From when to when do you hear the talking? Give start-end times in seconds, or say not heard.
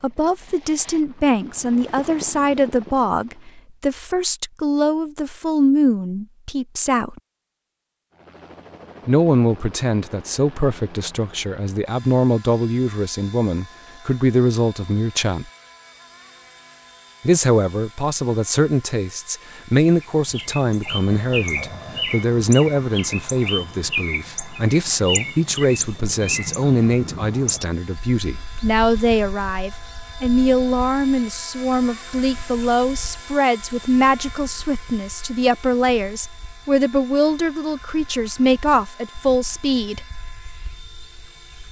0.0-7.2, 9.1-15.4, 17.2-40.1.